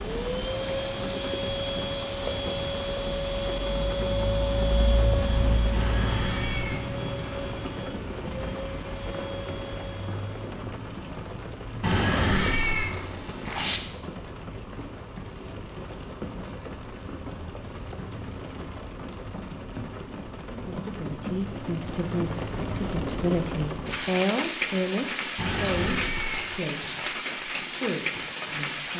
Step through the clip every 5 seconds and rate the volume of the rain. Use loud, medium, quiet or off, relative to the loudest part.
loud, loud, medium, medium, loud, loud.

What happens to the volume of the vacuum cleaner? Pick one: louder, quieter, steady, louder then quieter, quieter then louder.
quieter.